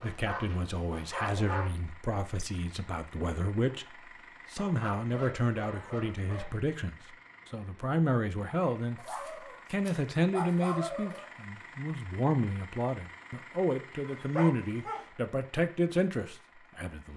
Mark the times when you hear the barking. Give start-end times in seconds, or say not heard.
0.0-1.8, 4.5-6.5, 8.9-11.2, 14.1-15.1.